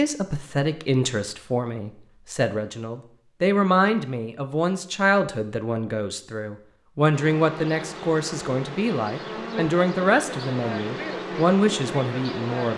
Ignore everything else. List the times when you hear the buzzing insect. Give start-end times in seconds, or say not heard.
7.1-12.7.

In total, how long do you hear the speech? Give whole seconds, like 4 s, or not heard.
13 s.